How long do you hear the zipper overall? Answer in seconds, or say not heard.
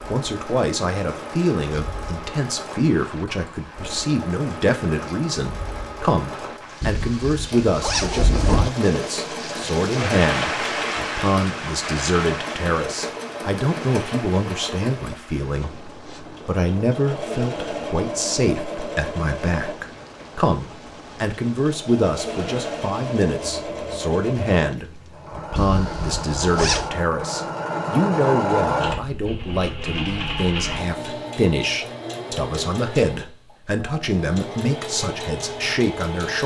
3 s.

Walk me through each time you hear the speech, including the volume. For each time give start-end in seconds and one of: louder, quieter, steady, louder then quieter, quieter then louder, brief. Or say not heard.
0.1-36.4 steady.